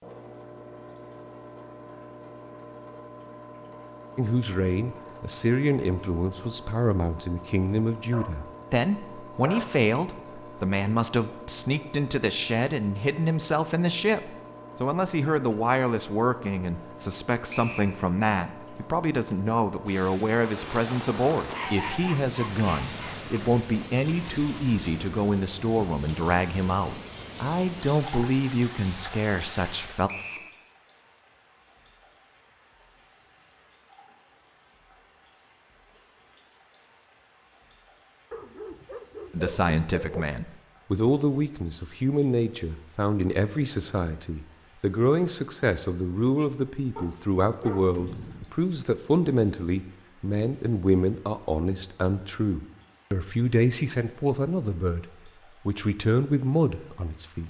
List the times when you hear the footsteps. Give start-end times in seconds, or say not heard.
not heard.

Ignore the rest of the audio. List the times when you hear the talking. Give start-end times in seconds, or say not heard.
4.2-30.1, 39.3-57.4.